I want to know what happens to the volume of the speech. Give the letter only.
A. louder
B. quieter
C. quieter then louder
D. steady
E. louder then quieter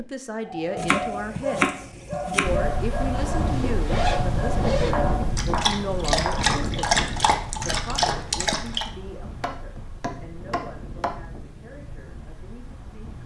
B.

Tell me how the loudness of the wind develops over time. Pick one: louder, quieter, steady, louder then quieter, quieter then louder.
quieter.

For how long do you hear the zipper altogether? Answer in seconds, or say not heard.
2 s.